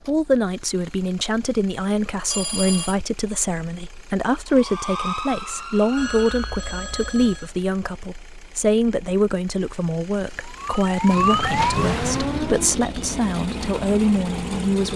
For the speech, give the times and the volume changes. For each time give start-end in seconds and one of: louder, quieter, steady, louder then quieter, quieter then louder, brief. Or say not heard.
0.1-14.9 steady.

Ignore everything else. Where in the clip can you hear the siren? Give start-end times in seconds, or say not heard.
4.5-6.7, 10.4-12.8.